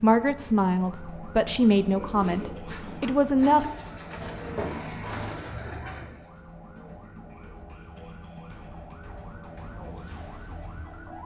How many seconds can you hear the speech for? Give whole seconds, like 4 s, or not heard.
4 s.